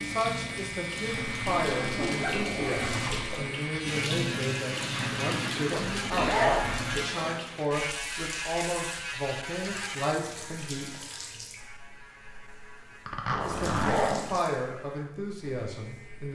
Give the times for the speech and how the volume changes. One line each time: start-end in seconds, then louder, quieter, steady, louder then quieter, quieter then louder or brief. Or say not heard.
0.1-10.9 steady
13.4-16.3 brief.